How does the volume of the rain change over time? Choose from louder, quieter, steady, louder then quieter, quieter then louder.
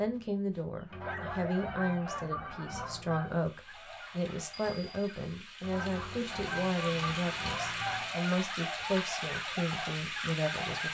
louder.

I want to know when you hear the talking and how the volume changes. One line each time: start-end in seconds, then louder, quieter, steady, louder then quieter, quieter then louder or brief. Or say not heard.
0.0-10.8 steady.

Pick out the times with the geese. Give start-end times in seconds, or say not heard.
0.9-3.4, 5.6-8.2.